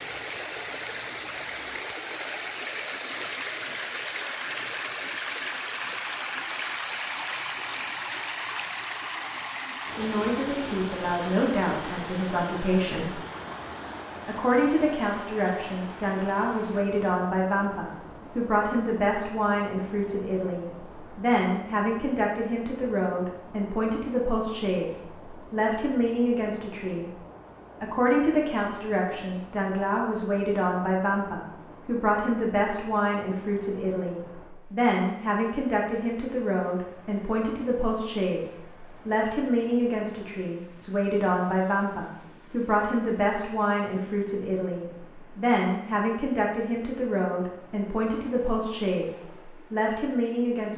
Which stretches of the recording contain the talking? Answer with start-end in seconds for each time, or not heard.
9.9-13.2, 14.2-27.1, 27.8-50.7.